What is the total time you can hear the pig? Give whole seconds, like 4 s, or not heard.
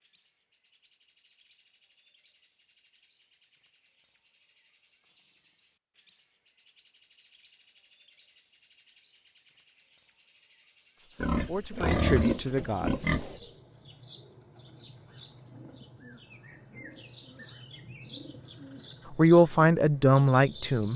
2 s.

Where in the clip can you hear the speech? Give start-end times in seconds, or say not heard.
10.9-13.1, 19.1-20.9.